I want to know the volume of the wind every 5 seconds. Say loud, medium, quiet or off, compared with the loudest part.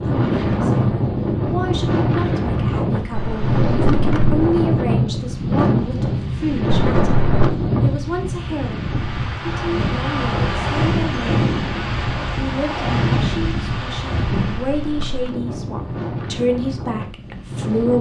loud, loud, loud, medium.